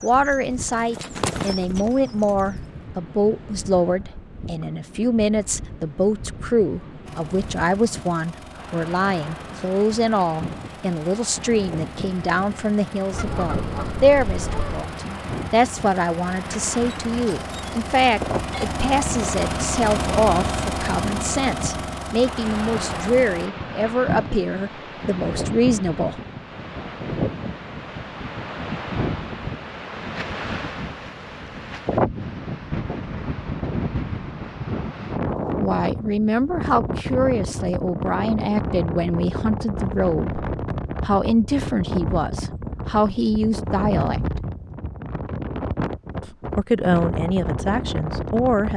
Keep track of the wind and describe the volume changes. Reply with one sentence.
The volume of the wind goes up.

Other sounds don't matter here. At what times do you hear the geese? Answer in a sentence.
You can hear the geese from 13.1 to 14.9 s.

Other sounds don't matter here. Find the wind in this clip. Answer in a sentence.
You can hear the wind from 0.0 to 48.7 s.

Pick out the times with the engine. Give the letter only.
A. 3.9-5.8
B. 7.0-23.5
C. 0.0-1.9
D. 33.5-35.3
B.